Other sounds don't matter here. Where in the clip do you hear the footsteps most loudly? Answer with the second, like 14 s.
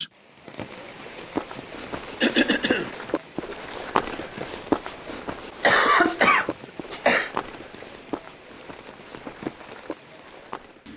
5 s.